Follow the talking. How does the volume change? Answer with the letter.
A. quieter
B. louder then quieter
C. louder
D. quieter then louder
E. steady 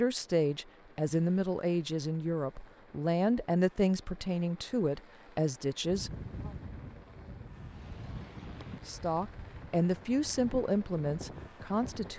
E.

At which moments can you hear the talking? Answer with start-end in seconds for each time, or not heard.
0.0-6.5, 8.8-12.1.